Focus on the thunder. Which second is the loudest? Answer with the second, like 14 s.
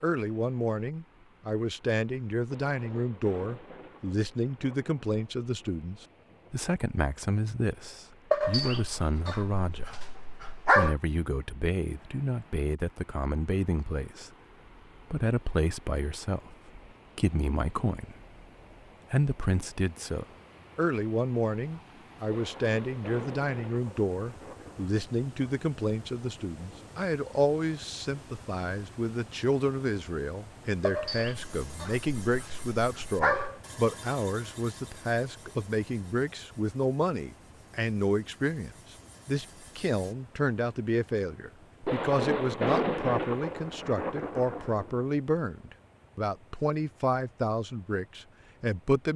43 s.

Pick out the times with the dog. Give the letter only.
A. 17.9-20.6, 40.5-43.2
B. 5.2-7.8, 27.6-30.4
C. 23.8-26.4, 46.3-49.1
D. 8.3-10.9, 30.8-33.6
D.